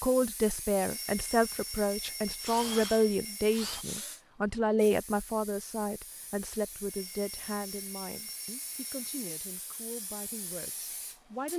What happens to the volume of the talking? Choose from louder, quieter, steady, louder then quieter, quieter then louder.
quieter.